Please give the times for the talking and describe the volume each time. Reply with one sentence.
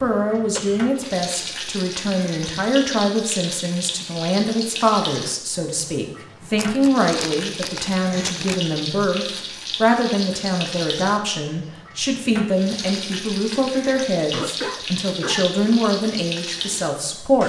The talking can be heard from 0.0 to 17.4 s, at a steady volume.